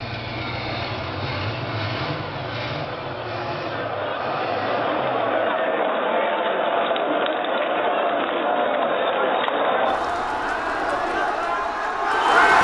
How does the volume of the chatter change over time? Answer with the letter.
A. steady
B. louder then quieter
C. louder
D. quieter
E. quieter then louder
C.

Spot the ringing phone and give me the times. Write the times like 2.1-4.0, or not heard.
not heard.